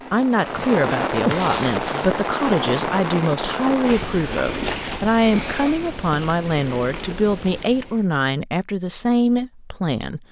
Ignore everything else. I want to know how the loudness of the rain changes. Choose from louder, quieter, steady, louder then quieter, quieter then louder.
quieter.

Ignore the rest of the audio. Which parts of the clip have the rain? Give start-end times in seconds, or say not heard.
0.0-8.1.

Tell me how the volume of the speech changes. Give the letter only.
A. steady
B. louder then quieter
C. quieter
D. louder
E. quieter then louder
A.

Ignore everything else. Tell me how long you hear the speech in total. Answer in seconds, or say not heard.
10 s.